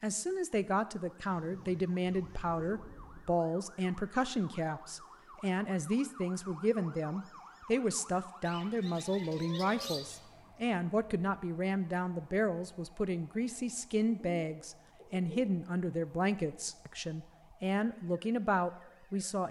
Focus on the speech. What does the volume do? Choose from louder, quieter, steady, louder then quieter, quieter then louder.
steady.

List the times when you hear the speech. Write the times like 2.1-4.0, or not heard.
0.0-19.4.